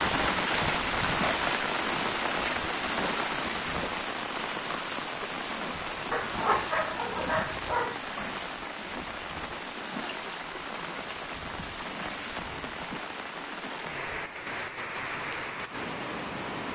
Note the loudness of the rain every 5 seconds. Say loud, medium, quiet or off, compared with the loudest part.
loud, medium, medium, medium.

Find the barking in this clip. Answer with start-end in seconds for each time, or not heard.
6.1-8.0.